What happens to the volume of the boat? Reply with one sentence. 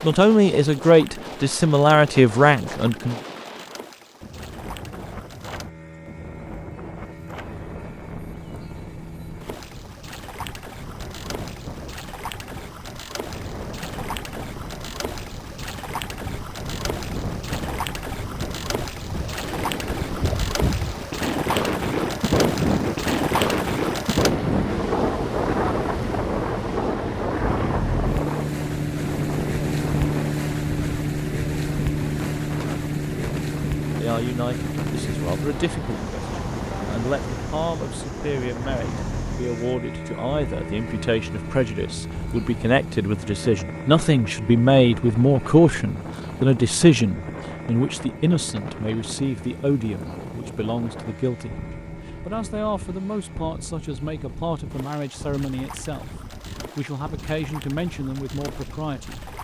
The volume of the boat goes up, then down.